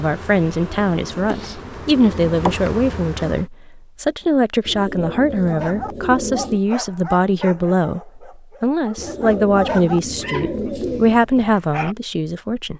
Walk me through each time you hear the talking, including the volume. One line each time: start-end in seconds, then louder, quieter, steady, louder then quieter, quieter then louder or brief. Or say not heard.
0.0-12.7 steady.